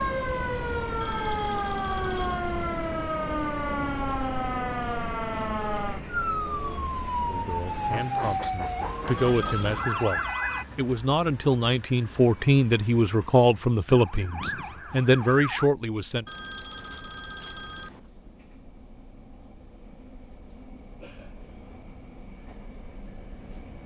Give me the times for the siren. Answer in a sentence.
You can hear the siren from 0.0 to 10.7 s and from 13.8 to 15.7 s.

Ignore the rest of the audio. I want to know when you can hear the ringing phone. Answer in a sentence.
You can hear the ringing phone from 1.0 to 2.5 s, from 9.2 to 9.9 s and from 16.2 to 18.0 s.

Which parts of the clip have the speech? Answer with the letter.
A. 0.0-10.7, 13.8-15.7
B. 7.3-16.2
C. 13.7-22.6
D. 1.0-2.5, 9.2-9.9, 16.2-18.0
B.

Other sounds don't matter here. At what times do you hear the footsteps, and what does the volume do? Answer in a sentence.
The footsteps can't be heard in this clip.